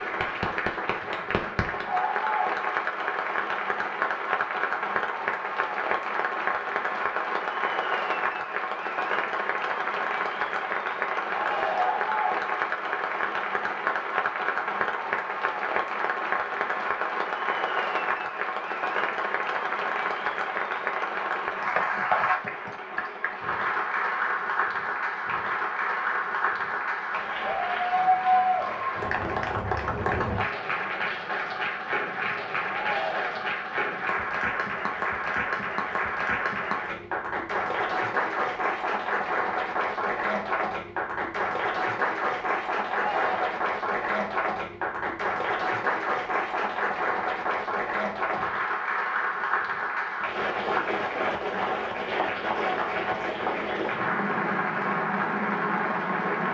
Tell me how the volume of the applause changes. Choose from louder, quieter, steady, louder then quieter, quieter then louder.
steady.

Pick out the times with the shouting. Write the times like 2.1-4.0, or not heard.
11.3-12.2, 32.6-33.5, 42.9-43.5.